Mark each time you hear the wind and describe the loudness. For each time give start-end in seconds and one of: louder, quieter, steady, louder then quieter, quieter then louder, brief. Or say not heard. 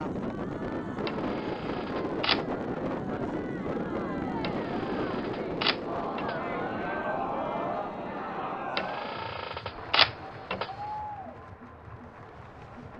0.0-12.9 quieter.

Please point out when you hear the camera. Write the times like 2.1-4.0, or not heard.
1.1-2.5, 4.4-6.3, 8.8-10.7.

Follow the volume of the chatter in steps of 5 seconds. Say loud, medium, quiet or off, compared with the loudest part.
medium, loud, medium.